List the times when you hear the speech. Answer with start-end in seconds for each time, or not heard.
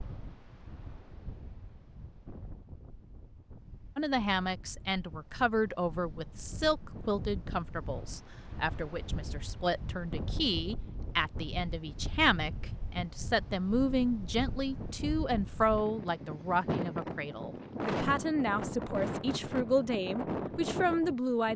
4.0-21.5.